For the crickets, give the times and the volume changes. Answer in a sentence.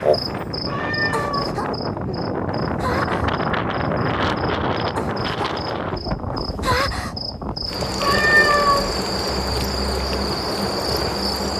You can hear the crickets from 0.0 to 11.5 s, getting louder.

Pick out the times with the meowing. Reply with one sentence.
The meowing can be heard from 0.7 to 1.6 s and from 8.0 to 8.9 s.